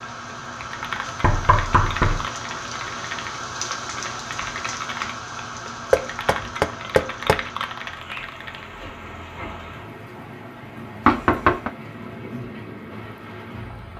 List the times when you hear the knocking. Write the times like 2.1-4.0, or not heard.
1.2-2.2, 5.9-7.4, 11.1-11.7.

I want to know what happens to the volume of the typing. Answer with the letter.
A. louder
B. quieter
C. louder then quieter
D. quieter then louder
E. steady
E.